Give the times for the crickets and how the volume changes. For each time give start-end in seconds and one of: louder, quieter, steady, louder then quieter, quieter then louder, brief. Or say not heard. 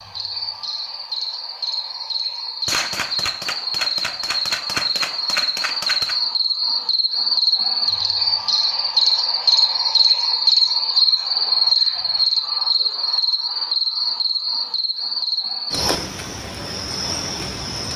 0.0-17.9 louder then quieter.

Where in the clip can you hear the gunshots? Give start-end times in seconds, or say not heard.
2.6-6.2.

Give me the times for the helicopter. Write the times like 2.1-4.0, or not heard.
not heard.